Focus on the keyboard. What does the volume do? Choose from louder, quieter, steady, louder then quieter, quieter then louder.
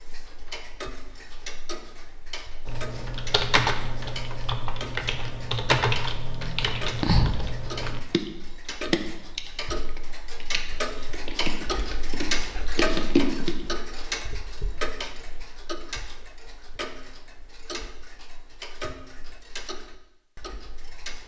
quieter then louder.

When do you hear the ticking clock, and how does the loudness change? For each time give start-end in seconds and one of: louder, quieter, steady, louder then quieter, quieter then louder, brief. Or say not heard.
0.0-21.2 louder then quieter.